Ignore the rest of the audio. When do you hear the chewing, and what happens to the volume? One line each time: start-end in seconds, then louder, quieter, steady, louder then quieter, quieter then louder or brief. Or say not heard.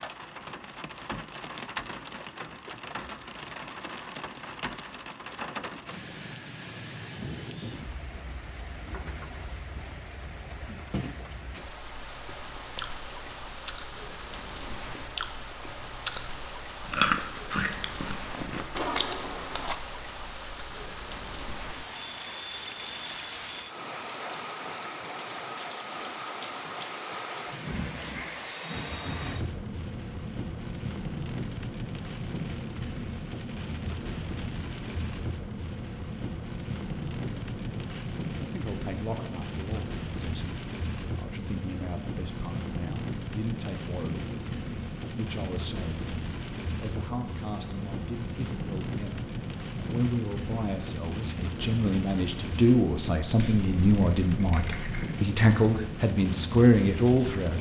12.1-19.8 louder.